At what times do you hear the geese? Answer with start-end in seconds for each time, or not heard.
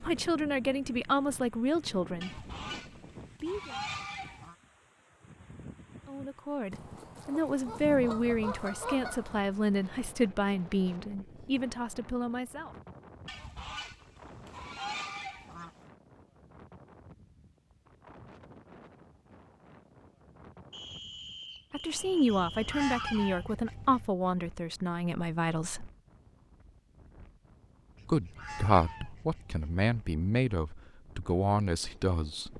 2.2-4.5, 6.7-9.4, 13.2-15.7, 22.2-24.1, 27.9-29.9.